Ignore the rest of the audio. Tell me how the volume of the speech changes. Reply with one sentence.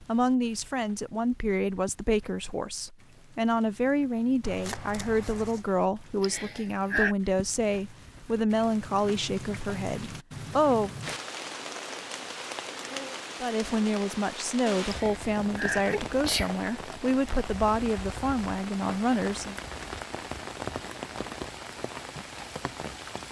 The loudness of the speech stays about the same.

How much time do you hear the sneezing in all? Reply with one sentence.
The sneezing can be heard for 3 seconds in total.